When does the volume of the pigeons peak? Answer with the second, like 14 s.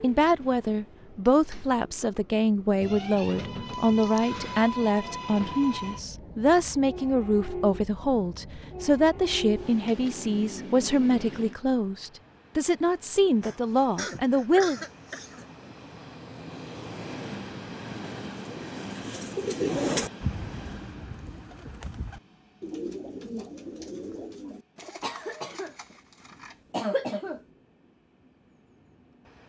20 s.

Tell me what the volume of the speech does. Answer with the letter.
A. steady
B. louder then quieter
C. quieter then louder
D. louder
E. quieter
A.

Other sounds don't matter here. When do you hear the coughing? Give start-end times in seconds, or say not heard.
3.7-4.7, 13.4-15.4, 24.8-25.9, 26.7-27.4.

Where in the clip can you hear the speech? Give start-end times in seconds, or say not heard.
0.0-14.8.